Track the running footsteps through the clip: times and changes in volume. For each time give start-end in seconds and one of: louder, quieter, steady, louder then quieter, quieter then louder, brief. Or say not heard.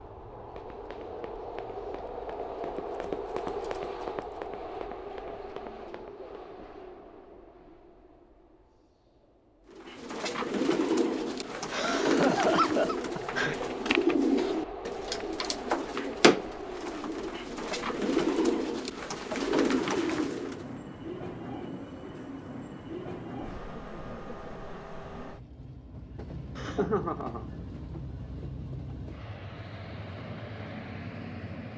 0.5-6.3 louder then quieter.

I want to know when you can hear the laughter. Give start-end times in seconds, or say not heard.
11.7-13.6, 26.6-27.4.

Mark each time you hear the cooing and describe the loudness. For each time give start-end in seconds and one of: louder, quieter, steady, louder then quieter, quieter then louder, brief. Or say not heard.
9.7-20.6 steady.